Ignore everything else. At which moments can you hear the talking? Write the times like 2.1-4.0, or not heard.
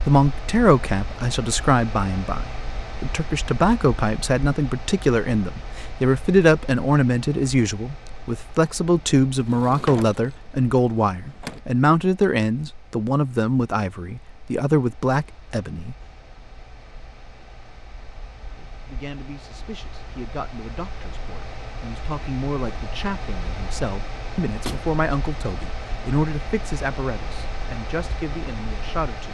0.1-15.9, 18.6-29.2.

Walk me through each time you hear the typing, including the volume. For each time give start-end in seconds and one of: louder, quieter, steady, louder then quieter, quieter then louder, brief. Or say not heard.
not heard.